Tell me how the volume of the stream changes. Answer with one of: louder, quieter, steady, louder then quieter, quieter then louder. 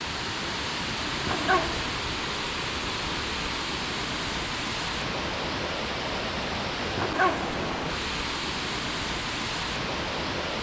steady.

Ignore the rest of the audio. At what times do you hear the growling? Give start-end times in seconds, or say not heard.
1.2-1.9, 7.0-7.7.